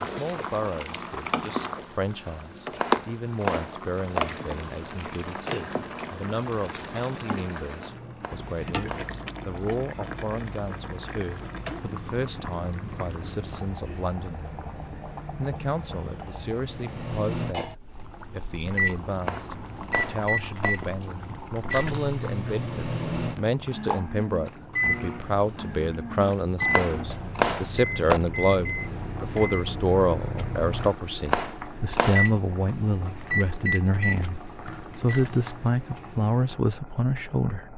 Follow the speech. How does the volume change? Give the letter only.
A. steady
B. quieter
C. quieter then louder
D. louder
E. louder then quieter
D.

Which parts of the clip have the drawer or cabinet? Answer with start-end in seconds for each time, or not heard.
not heard.